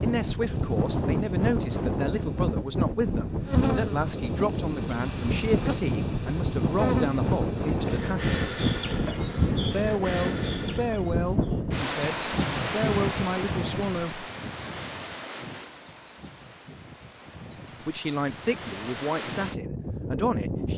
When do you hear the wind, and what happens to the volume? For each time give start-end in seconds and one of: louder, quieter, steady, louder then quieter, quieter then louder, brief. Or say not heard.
0.0-20.7 quieter.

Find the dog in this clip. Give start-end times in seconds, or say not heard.
not heard.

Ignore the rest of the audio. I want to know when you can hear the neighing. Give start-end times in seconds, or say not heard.
not heard.